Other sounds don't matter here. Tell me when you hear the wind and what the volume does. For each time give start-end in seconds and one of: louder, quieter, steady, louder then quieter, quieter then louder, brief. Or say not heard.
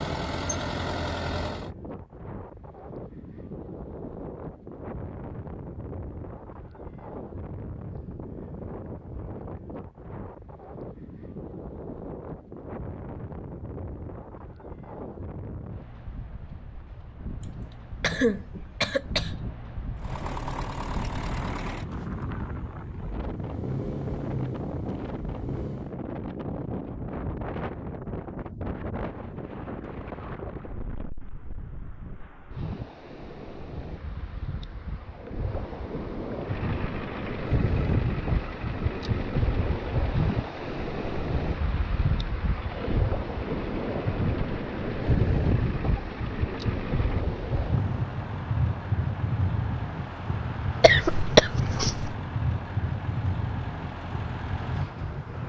0.1-55.4 louder.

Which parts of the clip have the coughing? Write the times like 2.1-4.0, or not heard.
17.4-19.4, 50.8-52.1.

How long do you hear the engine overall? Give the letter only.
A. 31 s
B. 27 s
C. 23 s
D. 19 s
B.